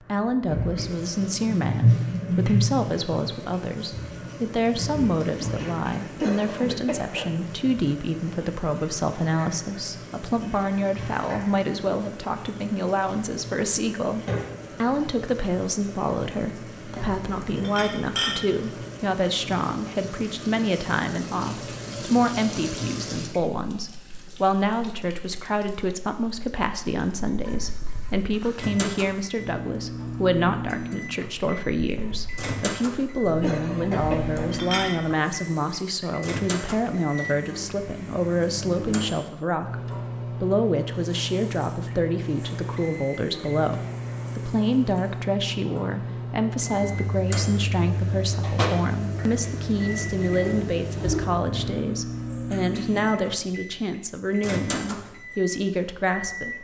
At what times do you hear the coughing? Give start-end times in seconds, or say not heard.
6.2-7.4, 33.4-34.6.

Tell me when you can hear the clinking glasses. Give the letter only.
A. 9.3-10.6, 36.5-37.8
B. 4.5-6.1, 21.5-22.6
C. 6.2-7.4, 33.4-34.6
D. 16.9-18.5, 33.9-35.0
D.